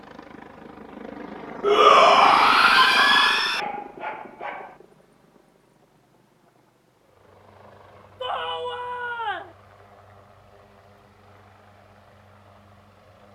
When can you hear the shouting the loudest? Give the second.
2 s.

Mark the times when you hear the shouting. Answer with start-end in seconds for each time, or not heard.
1.6-3.6, 8.2-9.6.